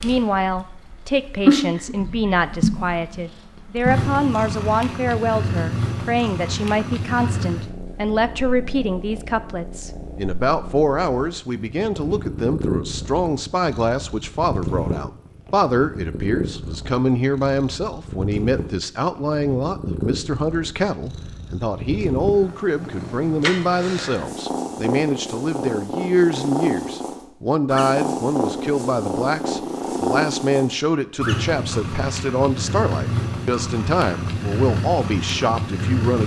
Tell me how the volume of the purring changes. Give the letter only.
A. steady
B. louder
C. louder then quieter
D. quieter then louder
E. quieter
D.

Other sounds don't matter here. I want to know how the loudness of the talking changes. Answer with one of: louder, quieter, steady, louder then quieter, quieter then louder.
steady.